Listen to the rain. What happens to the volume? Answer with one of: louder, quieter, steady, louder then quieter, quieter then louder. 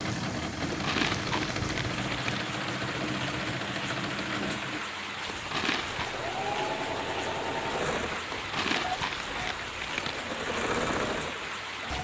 steady.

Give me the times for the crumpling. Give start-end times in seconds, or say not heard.
0.7-2.5, 5.2-6.2, 8.3-10.2.